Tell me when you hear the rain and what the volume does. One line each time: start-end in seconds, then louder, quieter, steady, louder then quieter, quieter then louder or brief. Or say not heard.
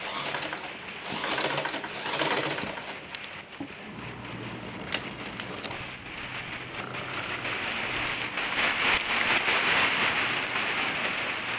0.0-11.5 louder.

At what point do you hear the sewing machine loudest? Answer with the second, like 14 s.
2 s.